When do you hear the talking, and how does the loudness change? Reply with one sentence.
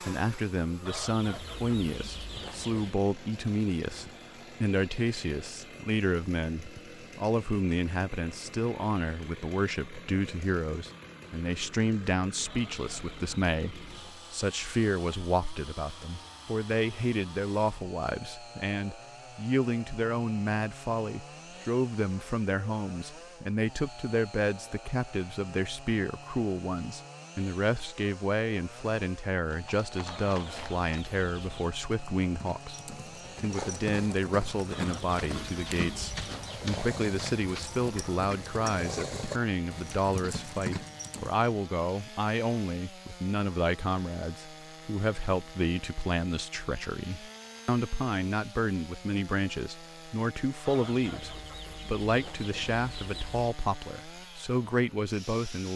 You can hear the talking from 0.0 to 55.7 s, at a steady volume.